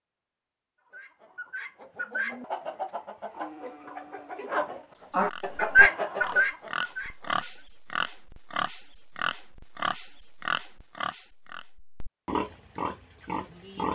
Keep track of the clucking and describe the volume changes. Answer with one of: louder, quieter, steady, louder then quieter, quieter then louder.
louder then quieter.